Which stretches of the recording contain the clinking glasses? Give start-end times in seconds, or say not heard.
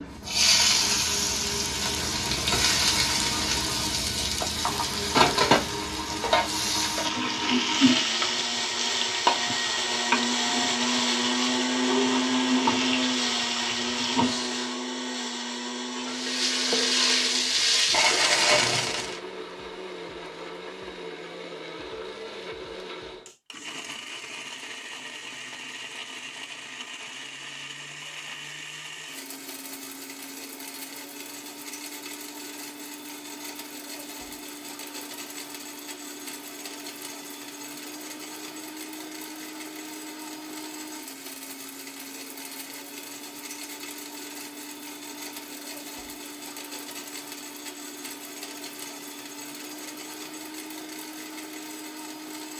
not heard.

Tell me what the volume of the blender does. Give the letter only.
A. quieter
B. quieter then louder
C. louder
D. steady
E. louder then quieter
A.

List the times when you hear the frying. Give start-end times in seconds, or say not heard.
0.0-14.8, 15.9-19.2.